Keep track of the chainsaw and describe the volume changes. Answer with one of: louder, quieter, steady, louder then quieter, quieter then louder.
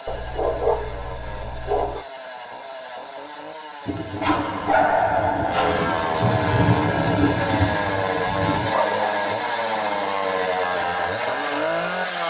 louder.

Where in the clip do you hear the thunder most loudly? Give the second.
7 s.